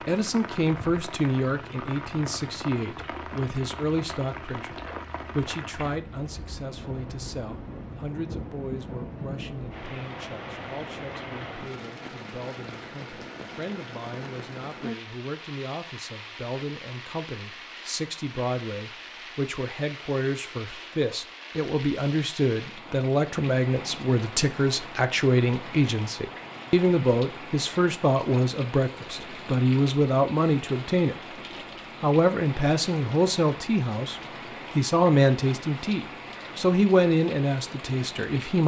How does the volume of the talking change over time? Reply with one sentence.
The volume of the talking goes down, then up.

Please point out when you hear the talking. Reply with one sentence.
You can hear the talking from 0.0 to 31.4 s and from 32.0 to 38.6 s.